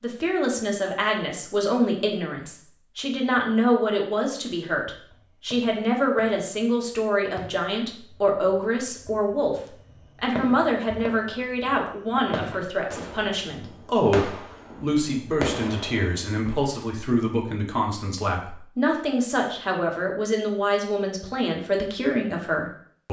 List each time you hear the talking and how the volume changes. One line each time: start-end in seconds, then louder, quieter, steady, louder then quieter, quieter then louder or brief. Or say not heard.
0.0-23.0 steady.